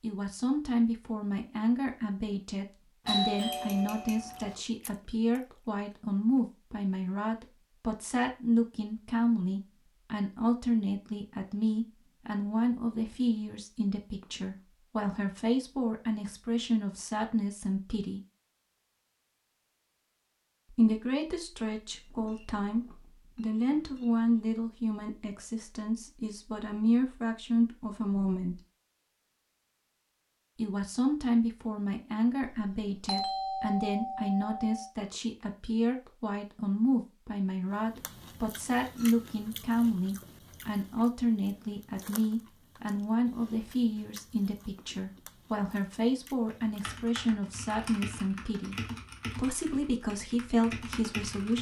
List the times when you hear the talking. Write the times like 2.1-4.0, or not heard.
0.0-18.2, 20.7-28.6, 30.6-48.8, 49.4-51.5.